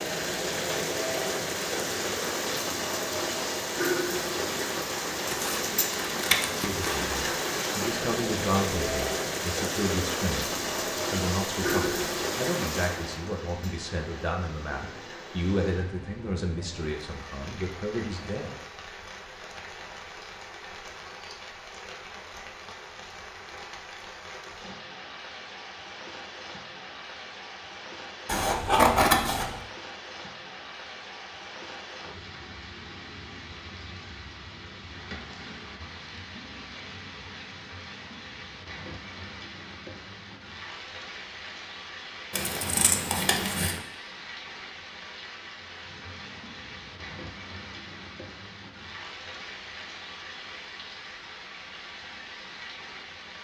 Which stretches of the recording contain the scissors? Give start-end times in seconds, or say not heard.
5.2-7.2, 28.2-29.6, 42.3-43.8.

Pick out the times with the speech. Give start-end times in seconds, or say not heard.
6.5-10.5, 11.1-18.5.